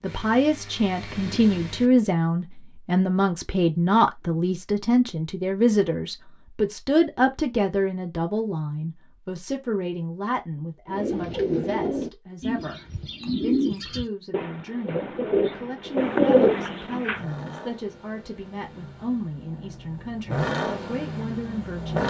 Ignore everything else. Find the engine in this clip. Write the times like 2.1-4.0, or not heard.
0.0-1.9, 16.9-22.0.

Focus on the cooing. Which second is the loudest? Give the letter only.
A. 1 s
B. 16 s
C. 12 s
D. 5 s
B.